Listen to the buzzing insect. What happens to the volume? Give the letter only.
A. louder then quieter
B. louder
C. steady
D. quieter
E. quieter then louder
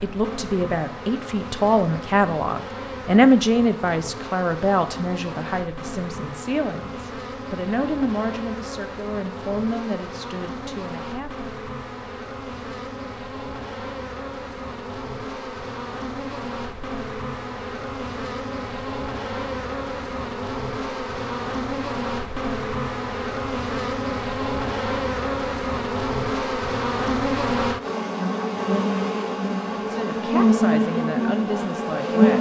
B.